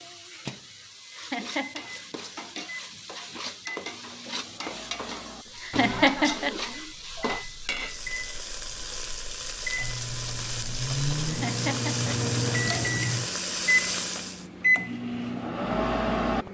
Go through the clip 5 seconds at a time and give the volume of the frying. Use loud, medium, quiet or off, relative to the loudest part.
medium, loud, loud, off.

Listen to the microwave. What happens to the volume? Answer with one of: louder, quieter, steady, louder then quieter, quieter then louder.
louder.